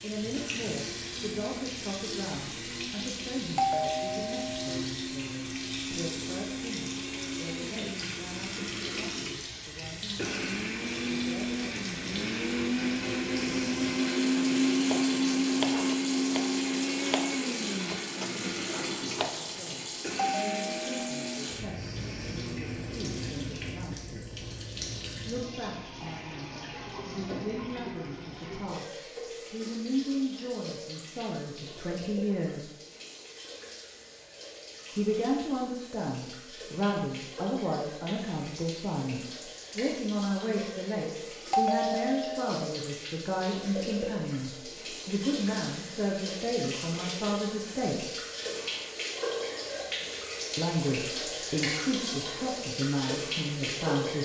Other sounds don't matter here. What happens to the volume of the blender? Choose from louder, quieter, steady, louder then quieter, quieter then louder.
louder then quieter.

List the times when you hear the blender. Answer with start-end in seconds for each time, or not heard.
0.2-23.9.